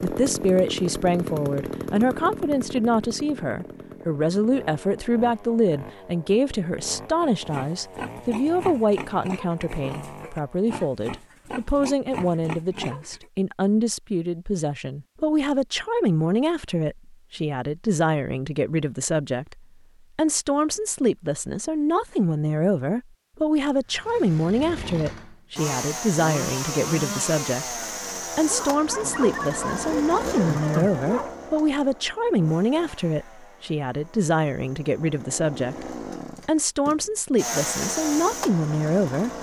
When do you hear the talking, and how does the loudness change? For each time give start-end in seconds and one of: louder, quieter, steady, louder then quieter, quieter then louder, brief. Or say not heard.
0.0-39.3 steady.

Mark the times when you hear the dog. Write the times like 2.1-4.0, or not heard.
28.4-31.4.